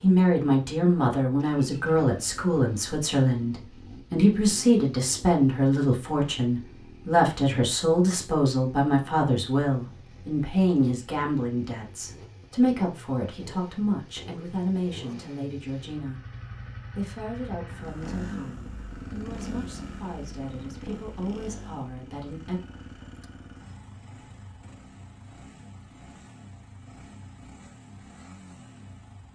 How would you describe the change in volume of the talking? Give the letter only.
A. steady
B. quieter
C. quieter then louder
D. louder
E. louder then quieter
B.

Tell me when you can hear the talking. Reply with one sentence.
You can hear the talking from 0.0 to 22.6 s.